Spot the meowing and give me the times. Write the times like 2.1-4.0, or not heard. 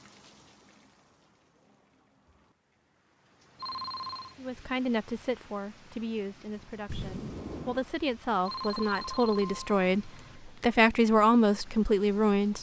6.8-7.9.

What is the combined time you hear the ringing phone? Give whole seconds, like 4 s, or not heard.
3 s.